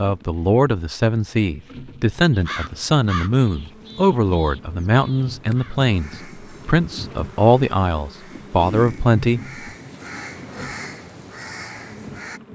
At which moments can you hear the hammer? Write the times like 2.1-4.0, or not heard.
not heard.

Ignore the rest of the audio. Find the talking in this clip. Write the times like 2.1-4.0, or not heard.
0.0-9.4.